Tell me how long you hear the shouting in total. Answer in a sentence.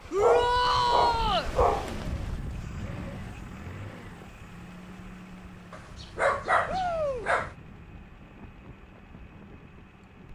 You can hear the shouting for 2 seconds altogether.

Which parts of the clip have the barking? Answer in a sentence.
The barking can be heard from 0.1 to 1.9 s and from 5.7 to 7.5 s.